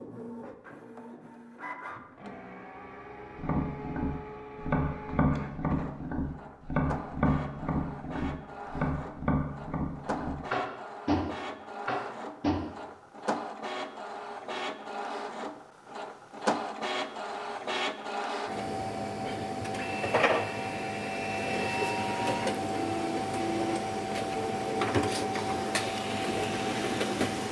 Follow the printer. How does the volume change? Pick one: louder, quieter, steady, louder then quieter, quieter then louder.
louder.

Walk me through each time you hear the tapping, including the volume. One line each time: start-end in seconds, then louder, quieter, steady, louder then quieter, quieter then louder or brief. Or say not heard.
3.4-12.7 steady.